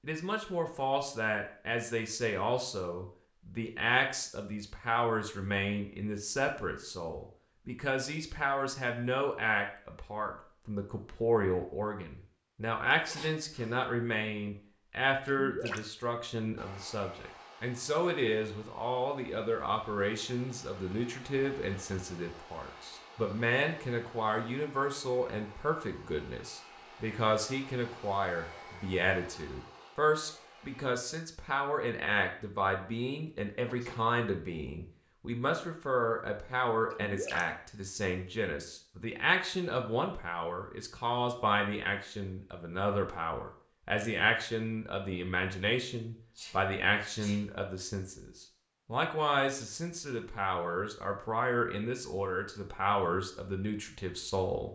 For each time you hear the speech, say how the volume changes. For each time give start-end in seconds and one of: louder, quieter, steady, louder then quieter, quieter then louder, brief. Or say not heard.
0.0-54.7 steady.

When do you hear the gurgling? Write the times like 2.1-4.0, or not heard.
15.2-15.9, 36.9-37.5.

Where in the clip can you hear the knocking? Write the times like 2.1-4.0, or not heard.
not heard.